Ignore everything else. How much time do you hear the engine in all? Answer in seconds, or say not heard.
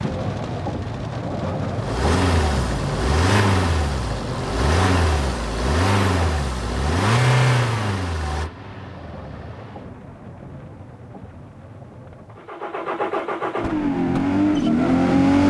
11 s.